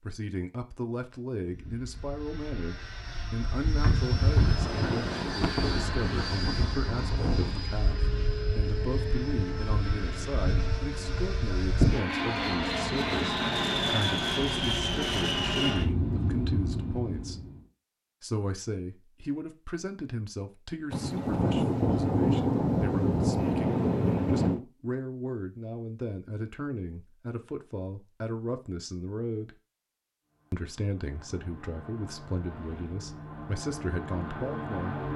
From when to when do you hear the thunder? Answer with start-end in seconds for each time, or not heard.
4.3-7.7, 20.9-24.6.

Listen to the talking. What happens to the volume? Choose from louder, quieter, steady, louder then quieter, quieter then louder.
steady.